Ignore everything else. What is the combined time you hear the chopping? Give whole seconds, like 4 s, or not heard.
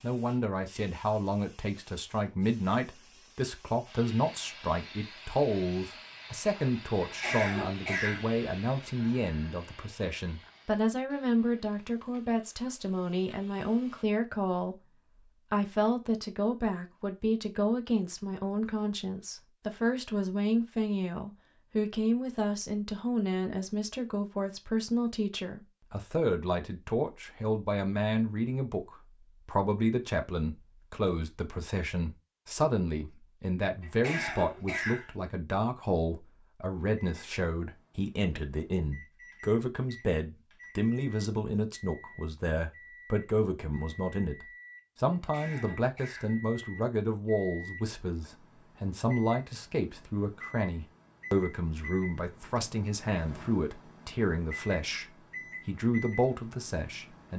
not heard.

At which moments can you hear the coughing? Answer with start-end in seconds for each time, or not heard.
7.0-8.3, 33.8-35.1, 45.1-46.4.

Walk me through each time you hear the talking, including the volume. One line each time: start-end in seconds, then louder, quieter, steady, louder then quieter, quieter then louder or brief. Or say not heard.
0.0-57.3 steady.